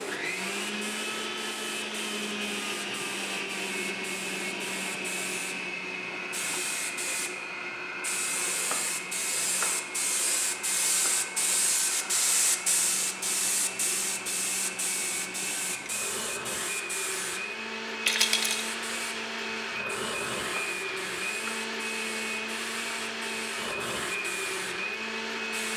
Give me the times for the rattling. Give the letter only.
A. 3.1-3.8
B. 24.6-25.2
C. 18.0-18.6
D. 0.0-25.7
C.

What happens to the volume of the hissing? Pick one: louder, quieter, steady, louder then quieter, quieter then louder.
louder then quieter.